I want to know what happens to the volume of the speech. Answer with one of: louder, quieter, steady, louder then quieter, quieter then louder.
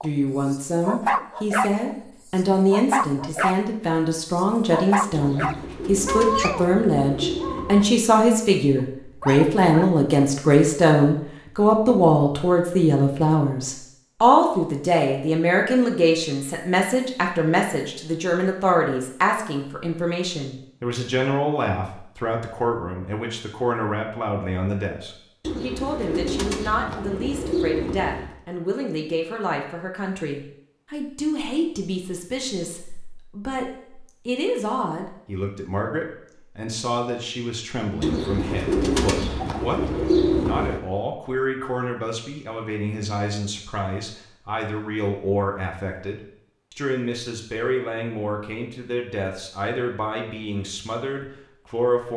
quieter.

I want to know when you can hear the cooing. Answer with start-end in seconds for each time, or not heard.
5.1-8.0, 25.4-28.4, 38.0-40.8.